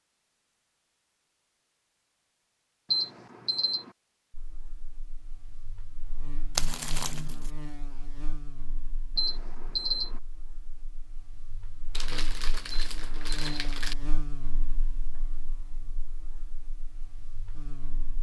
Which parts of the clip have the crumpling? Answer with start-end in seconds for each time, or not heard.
6.5-7.5, 11.9-13.9.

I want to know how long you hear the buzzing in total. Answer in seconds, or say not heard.
14 s.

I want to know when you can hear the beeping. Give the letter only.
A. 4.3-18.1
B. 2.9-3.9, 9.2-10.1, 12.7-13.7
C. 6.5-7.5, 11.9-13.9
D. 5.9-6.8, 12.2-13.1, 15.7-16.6
B.